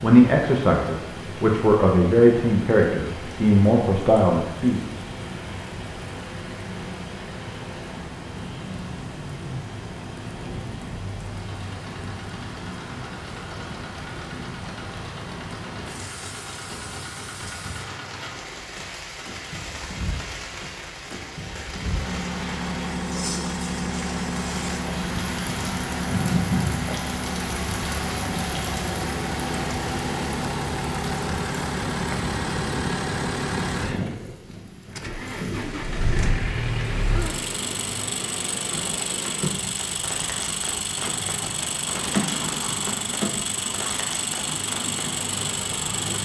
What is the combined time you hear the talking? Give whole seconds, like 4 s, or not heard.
5 s.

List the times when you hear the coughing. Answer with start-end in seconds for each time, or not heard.
not heard.